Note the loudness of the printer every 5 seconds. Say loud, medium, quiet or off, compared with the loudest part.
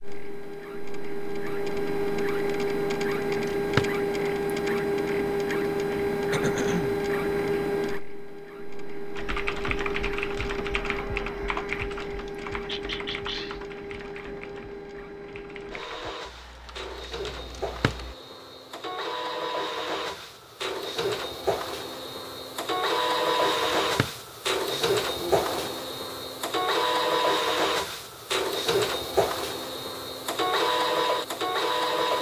loud, loud, medium, medium, loud, loud, loud.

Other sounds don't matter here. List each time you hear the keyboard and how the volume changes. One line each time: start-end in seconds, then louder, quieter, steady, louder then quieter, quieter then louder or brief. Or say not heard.
9.2-18.1 quieter.